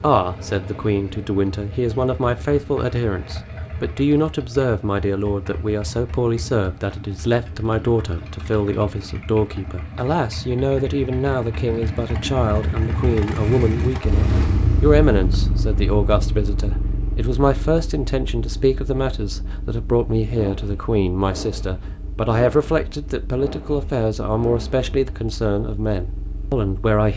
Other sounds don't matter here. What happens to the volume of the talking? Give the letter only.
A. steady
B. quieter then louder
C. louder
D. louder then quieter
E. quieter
A.